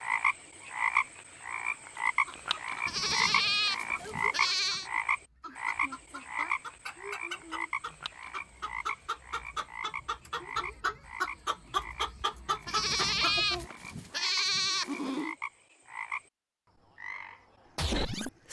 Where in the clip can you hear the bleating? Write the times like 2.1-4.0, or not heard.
2.9-4.9, 12.7-15.3.